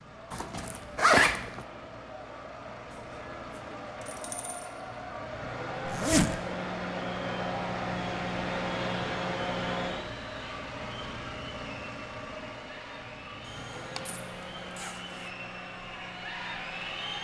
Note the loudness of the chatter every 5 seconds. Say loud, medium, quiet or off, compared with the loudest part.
medium, loud, medium, loud.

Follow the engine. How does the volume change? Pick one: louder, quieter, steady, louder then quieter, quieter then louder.
louder then quieter.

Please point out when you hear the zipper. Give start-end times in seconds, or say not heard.
0.3-1.6, 5.8-6.3, 13.4-15.3.